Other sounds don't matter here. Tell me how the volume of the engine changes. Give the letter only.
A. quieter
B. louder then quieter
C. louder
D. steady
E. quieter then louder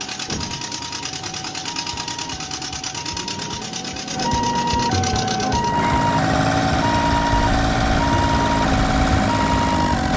C.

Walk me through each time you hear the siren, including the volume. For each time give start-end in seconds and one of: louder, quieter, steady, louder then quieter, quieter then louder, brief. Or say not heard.
0.0-10.1 louder.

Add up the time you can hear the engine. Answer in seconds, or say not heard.
10 s.